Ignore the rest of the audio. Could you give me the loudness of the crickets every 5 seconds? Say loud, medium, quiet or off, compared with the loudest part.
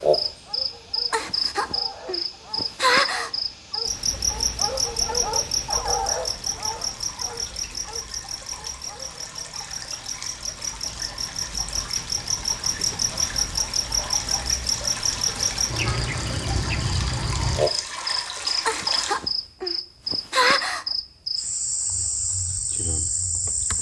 loud, medium, loud, loud, loud.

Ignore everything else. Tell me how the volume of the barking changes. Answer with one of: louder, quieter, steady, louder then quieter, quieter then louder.
louder then quieter.